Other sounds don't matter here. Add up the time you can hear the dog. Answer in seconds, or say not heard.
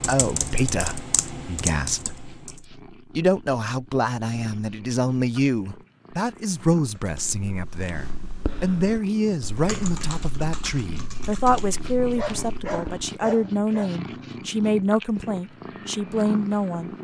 2 s.